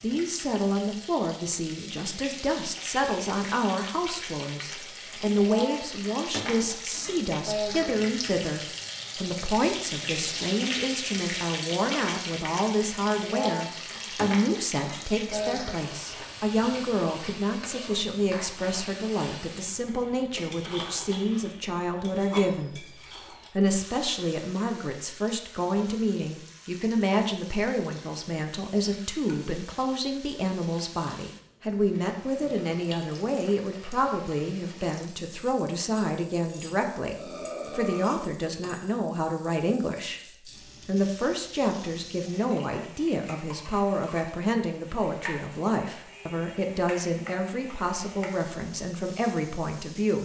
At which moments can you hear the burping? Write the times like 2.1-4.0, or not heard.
15.2-15.7, 37.1-38.3.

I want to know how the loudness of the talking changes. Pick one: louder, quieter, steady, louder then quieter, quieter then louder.
steady.